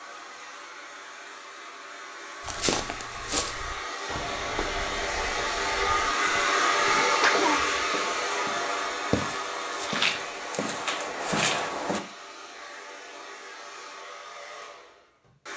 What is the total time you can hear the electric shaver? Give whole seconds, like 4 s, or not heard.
not heard.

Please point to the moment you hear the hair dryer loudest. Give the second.
7 s.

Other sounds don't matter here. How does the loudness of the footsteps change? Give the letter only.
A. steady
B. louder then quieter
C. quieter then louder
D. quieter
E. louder
C.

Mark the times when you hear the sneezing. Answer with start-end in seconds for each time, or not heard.
6.8-7.6.